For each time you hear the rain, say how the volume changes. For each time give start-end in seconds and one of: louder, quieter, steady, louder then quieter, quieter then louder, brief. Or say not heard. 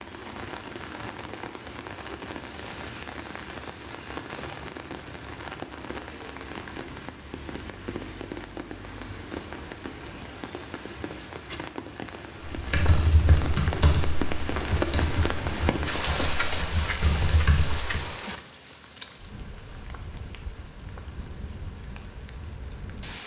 0.0-23.2 louder then quieter.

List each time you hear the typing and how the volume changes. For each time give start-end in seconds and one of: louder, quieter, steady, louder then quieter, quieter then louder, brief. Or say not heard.
12.4-18.1 quieter then louder.